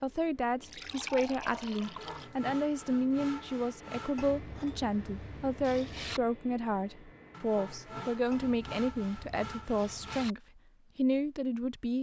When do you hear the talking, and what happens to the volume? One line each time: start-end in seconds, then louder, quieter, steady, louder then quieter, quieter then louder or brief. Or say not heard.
0.0-11.9 steady.